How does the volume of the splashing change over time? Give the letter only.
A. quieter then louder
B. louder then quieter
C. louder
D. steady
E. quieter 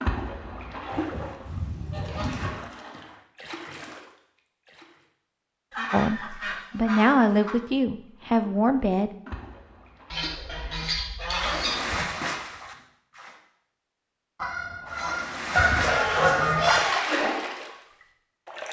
A.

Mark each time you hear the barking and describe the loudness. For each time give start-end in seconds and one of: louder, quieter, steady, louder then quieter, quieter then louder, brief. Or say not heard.
not heard.